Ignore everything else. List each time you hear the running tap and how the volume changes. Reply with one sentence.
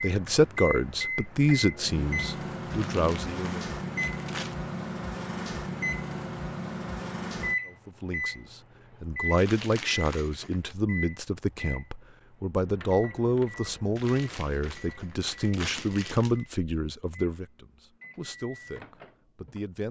The running tap can't be heard in this clip.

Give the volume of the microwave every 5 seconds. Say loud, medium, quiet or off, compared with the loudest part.
loud, loud, medium, quiet.